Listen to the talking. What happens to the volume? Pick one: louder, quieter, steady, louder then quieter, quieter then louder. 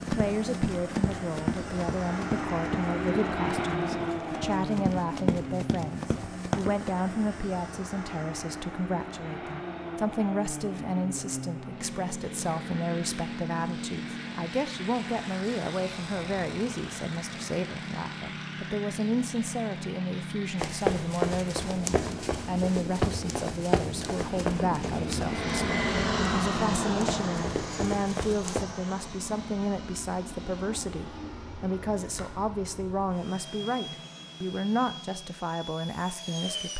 steady.